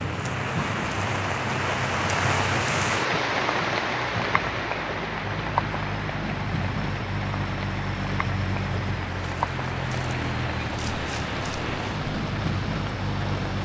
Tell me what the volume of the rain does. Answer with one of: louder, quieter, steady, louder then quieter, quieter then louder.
quieter.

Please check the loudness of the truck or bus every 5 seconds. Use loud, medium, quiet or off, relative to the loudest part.
medium, loud, loud.